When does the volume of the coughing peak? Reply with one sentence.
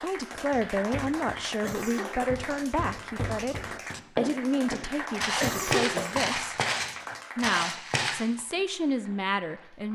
The volume of the coughing peaks at 6 seconds.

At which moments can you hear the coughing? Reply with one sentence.
The coughing can be heard from 1.6 to 2.2 s and from 5.3 to 6.2 s.